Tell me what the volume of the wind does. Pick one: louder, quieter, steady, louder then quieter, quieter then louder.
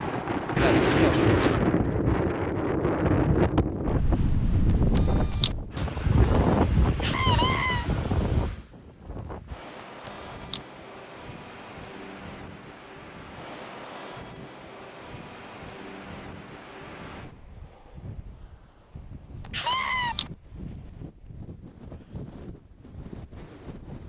quieter.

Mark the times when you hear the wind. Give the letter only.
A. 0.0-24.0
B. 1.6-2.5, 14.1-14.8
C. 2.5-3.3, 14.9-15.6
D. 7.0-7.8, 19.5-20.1
A.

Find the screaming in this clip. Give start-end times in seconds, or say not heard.
7.0-7.8, 19.5-20.1.